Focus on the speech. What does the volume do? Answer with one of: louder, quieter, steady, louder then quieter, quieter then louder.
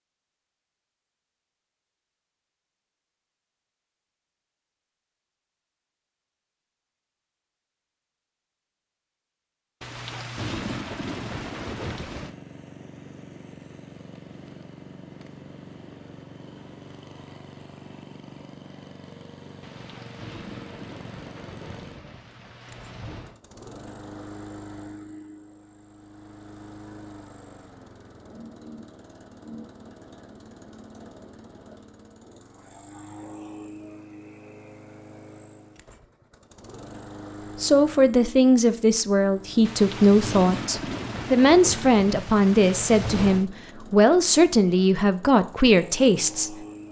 steady.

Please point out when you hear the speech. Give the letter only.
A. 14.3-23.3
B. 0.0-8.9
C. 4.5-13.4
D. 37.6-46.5
D.